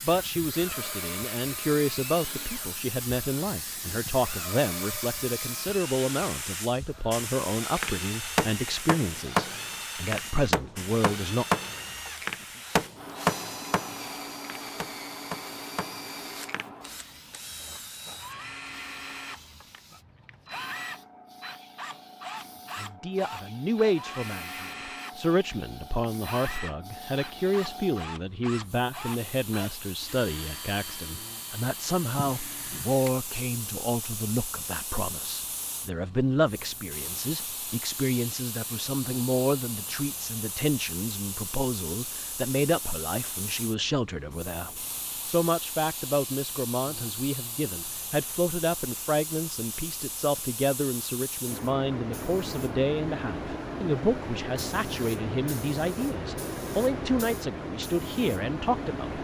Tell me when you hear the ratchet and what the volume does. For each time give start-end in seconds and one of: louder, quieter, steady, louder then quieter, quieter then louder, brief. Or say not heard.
not heard.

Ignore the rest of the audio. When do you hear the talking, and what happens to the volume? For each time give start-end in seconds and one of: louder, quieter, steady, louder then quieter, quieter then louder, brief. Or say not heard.
0.0-11.4 steady
22.8-59.1 steady.